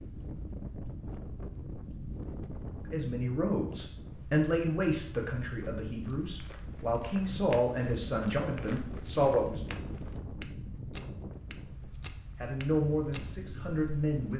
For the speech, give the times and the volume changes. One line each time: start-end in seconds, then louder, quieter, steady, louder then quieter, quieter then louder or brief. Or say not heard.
2.9-9.7 quieter then louder
12.4-14.3 brief.